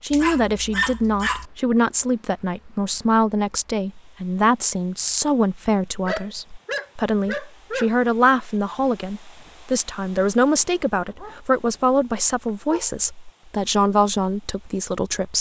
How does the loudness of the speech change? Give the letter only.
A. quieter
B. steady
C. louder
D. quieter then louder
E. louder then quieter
B.